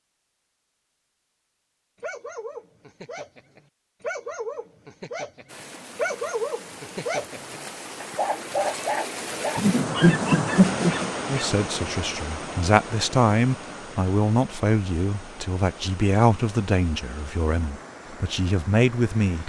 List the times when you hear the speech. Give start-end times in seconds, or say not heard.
11.2-19.4.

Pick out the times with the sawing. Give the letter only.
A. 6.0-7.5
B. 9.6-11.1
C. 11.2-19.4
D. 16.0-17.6
B.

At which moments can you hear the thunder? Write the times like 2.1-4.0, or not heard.
not heard.